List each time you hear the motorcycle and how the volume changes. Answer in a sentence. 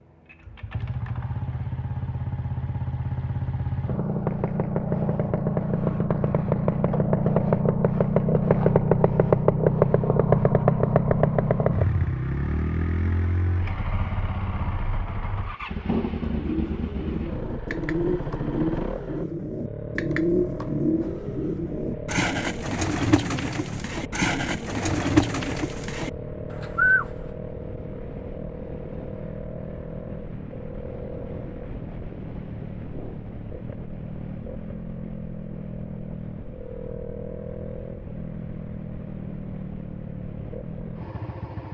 You can hear the motorcycle from 0.0 to 41.6 s, getting quieter.